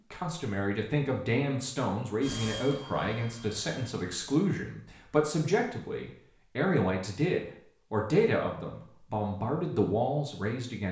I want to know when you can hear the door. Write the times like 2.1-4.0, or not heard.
not heard.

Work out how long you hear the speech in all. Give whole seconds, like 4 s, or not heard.
11 s.